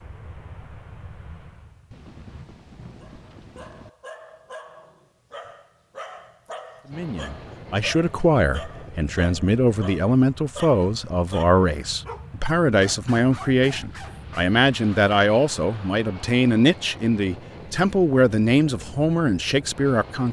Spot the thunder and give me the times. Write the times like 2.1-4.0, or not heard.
1.9-3.9.